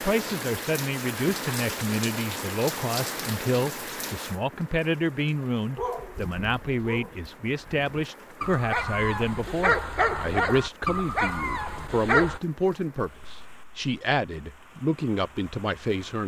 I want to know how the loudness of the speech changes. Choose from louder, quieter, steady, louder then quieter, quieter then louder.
steady.